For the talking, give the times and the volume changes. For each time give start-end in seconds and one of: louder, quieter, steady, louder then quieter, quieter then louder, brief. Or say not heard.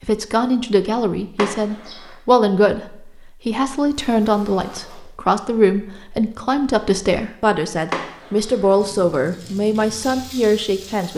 0.0-11.1 steady.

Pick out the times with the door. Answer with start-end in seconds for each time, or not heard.
1.4-2.1, 7.9-8.8.